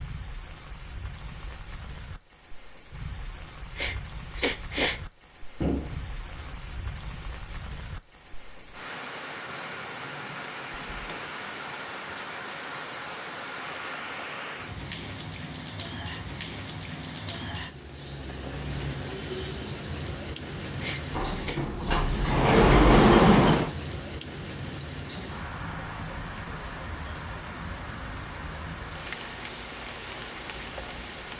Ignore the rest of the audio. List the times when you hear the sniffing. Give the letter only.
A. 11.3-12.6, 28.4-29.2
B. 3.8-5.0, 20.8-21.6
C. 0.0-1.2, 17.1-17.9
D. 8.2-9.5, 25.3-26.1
B.